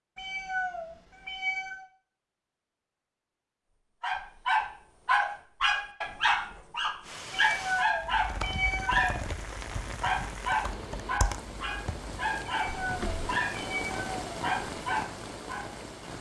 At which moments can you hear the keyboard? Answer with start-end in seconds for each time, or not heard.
8.0-13.3.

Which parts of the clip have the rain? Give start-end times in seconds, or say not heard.
7.0-16.1.